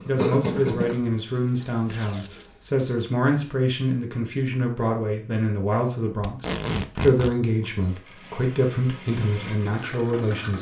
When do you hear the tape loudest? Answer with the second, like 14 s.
7 s.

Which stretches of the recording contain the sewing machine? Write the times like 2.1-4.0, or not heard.
0.0-2.7, 7.8-10.5.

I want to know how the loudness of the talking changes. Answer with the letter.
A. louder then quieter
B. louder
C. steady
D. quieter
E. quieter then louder
C.